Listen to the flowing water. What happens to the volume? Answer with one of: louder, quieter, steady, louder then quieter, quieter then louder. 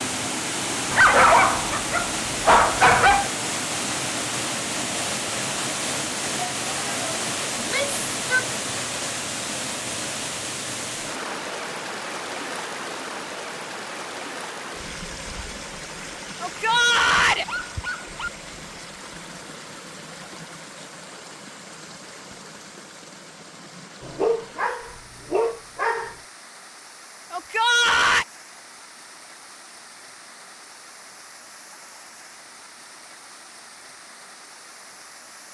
quieter.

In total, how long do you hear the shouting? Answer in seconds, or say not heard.
3 s.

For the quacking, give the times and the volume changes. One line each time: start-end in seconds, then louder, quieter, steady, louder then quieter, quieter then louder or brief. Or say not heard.
not heard.